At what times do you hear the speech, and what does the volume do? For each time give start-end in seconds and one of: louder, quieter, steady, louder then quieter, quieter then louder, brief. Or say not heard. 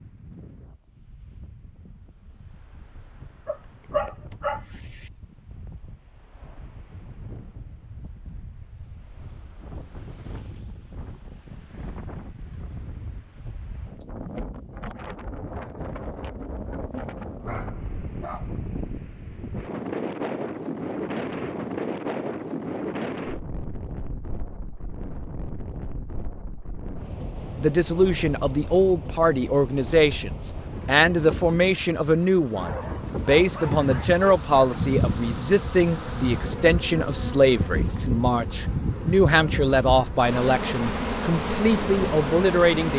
27.6-42.9 steady.